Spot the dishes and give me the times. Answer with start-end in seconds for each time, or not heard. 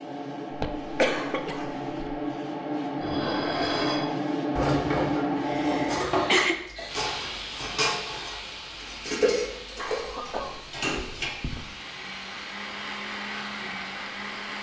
3.0-11.3.